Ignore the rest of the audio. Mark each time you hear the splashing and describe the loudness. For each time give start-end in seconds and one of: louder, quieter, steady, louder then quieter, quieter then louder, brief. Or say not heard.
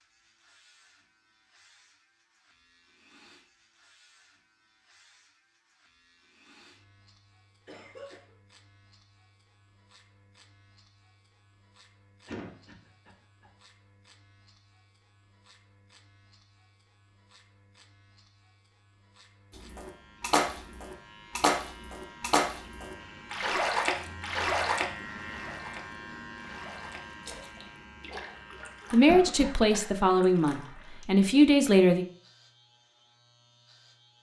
19.6-31.0 quieter.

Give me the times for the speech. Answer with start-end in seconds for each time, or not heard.
28.9-32.0.